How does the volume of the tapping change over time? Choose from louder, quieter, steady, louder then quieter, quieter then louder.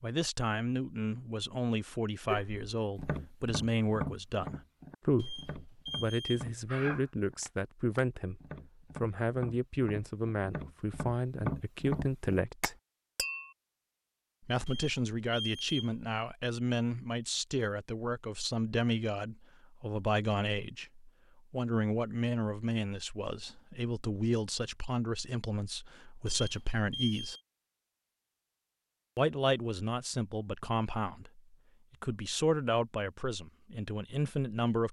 quieter then louder.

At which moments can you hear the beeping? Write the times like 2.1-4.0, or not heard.
5.2-7.0, 14.7-15.9, 26.2-27.4.